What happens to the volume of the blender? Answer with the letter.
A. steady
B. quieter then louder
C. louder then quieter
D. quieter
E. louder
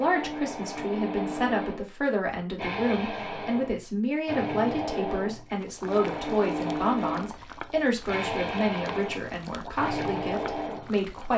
A.